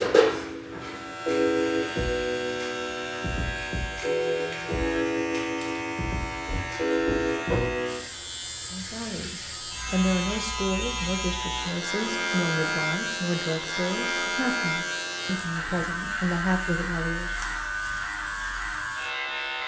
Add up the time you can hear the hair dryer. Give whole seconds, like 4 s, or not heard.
not heard.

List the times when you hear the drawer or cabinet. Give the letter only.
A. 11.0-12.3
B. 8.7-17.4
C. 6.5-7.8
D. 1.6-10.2
C.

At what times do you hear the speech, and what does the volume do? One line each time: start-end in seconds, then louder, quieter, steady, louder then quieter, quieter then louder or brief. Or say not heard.
8.7-17.4 steady.